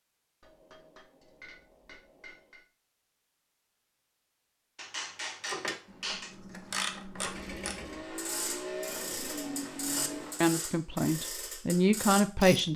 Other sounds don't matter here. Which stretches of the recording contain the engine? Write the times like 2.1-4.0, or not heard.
7.2-10.4.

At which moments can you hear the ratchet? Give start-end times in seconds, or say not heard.
5.4-12.7.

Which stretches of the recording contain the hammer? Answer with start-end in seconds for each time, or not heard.
0.4-2.6, 4.8-6.3, 8.8-10.4.